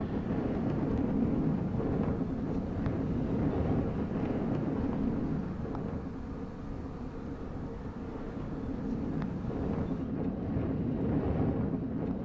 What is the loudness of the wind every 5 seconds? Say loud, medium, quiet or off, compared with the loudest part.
loud, medium, loud.